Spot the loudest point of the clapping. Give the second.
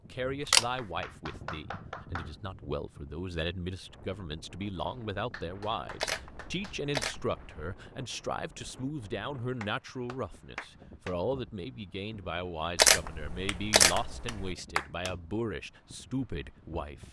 15 s.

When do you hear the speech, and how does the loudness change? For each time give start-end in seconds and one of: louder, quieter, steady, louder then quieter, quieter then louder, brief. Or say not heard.
0.1-17.0 steady.